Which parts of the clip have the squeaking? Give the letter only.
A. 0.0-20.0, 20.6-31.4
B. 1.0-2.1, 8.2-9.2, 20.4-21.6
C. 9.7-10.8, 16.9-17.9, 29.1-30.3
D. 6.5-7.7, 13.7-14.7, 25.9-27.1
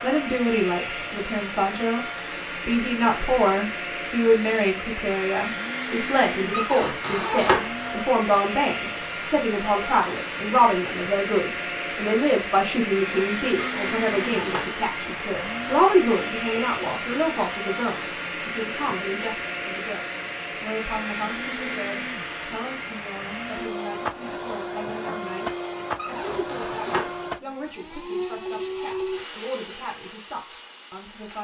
D.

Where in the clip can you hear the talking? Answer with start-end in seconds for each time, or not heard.
0.0-20.0, 20.6-31.4.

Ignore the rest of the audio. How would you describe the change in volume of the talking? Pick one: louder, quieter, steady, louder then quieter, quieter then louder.
quieter.